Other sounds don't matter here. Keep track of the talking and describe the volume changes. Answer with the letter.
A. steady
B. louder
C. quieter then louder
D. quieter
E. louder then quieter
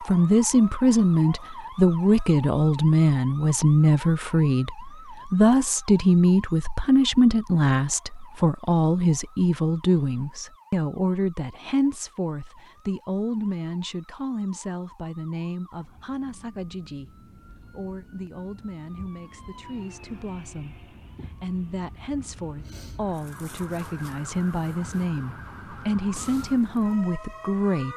C.